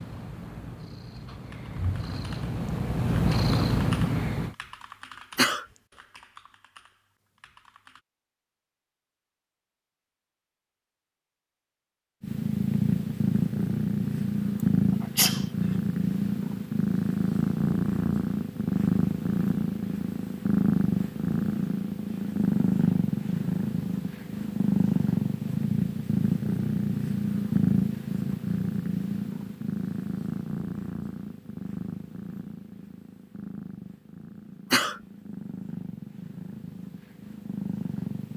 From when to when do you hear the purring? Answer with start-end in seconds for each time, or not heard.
0.0-4.5, 12.2-38.3.